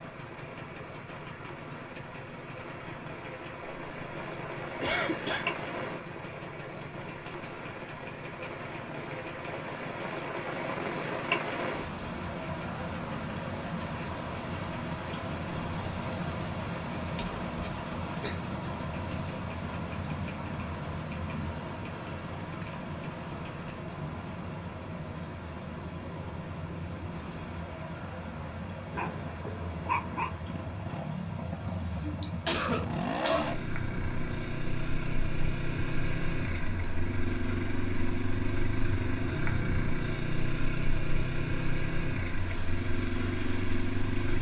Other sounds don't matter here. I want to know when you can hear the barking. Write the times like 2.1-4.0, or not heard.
28.9-30.4.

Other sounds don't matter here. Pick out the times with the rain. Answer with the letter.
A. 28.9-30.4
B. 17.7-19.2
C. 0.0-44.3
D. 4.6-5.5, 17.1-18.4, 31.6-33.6
C.